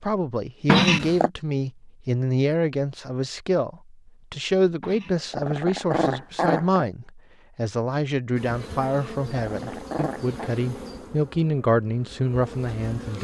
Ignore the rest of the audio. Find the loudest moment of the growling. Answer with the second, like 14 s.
1 s.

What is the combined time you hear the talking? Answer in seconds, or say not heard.
13 s.